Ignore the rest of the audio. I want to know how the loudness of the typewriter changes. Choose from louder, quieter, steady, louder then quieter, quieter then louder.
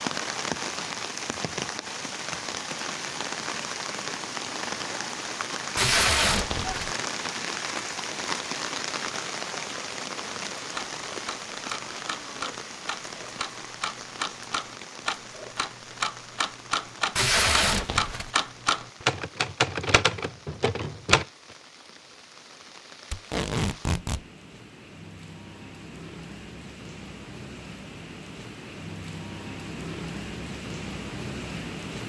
louder.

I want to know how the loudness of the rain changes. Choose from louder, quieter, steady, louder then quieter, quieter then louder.
quieter then louder.